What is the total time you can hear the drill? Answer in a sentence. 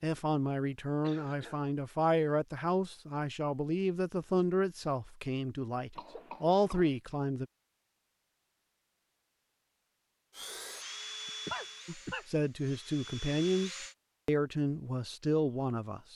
You can hear the drill for 4 seconds altogether.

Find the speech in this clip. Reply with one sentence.
The speech can be heard from 0.0 to 7.5 s and from 11.8 to 16.1 s.